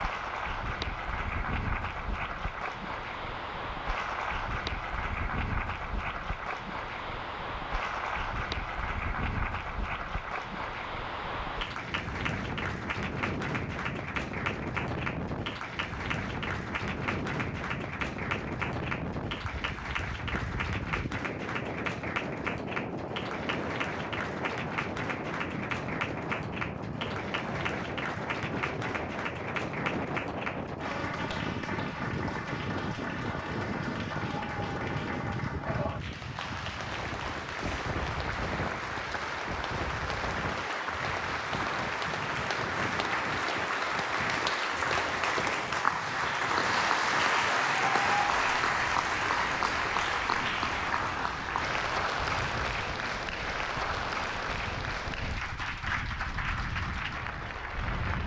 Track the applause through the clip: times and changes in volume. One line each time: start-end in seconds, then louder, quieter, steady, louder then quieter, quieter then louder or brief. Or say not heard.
0.0-58.2 louder.